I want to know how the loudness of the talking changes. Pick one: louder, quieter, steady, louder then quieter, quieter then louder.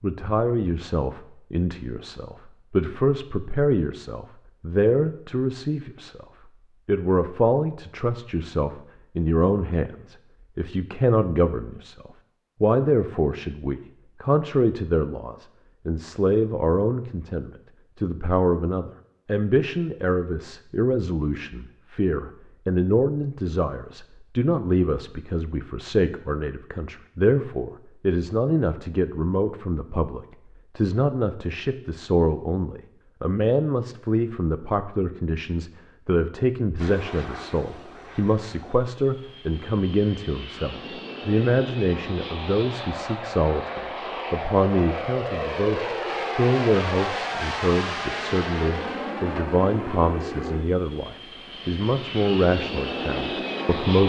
steady.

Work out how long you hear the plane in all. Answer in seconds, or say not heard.
17 s.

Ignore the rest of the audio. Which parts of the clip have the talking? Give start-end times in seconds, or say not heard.
0.0-6.2, 6.8-54.0.